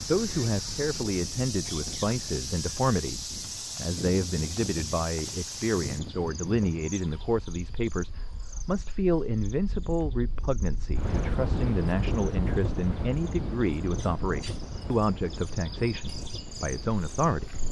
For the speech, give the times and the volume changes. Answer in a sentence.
You can hear the speech from 0.1 to 17.5 s, at a steady volume.